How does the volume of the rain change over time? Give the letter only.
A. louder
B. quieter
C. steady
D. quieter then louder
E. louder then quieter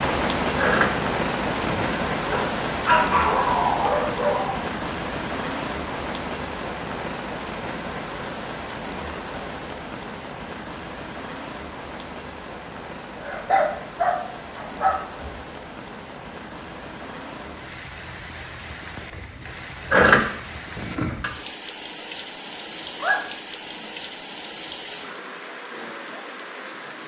B.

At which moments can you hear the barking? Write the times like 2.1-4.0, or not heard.
2.3-4.7, 13.2-15.2, 22.1-23.9.